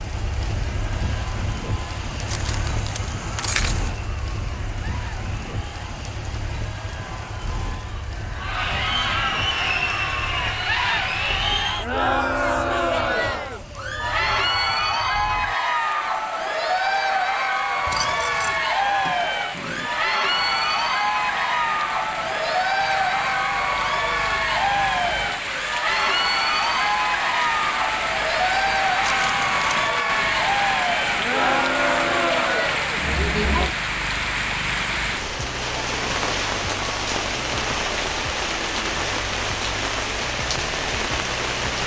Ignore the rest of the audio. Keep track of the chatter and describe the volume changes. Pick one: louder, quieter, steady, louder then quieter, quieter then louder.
louder.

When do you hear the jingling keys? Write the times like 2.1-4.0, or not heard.
2.2-3.9, 17.9-19.9, 29.0-29.9.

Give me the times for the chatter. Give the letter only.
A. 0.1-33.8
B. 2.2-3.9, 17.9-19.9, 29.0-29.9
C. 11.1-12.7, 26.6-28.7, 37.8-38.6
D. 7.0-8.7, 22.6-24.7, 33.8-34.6
A.